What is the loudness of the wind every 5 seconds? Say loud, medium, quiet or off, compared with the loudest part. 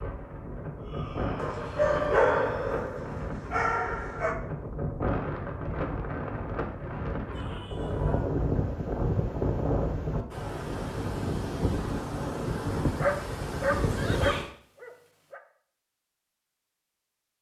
medium, loud, loud, off.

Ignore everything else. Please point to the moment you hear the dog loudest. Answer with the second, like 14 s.
2 s.